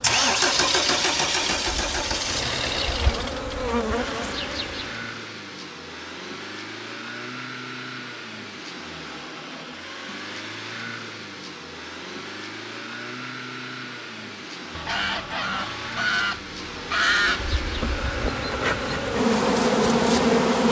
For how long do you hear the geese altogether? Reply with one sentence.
The geese can be heard for 3 seconds in total.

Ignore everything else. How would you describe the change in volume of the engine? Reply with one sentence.
The volume of the engine goes down.